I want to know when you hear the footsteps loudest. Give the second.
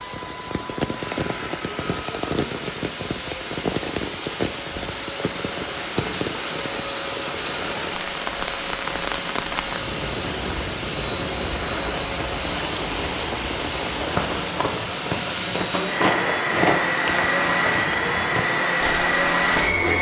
17 s.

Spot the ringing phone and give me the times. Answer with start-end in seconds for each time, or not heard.
not heard.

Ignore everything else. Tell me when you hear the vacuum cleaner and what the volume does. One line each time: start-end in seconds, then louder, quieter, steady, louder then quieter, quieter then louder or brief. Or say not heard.
0.0-19.9 louder.